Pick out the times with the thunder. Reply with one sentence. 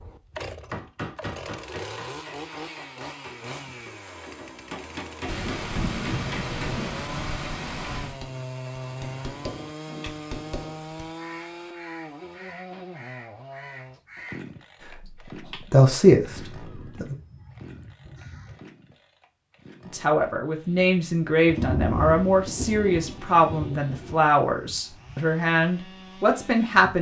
You can hear the thunder from 5.2 to 8.2 s and from 21.4 to 24.2 s.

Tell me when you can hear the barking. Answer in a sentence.
You can't hear the barking here.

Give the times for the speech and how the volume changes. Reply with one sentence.
You can hear the speech briefly from 15.0 to 17.1 s; and from 19.9 to 26.9 s, at a steady volume.